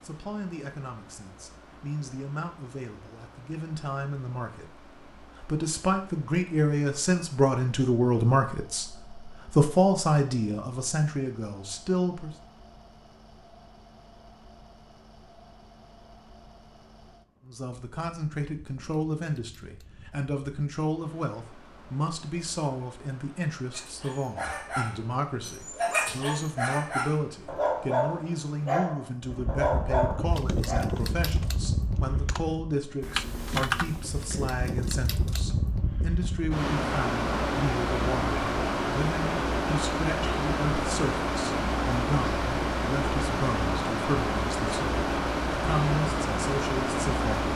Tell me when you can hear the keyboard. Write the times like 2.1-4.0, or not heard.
30.2-35.5.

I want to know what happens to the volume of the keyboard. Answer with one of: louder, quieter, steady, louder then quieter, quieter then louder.
louder then quieter.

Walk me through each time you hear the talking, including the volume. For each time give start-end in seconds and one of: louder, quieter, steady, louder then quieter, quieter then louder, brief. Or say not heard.
0.0-12.3 louder
17.4-47.5 steady.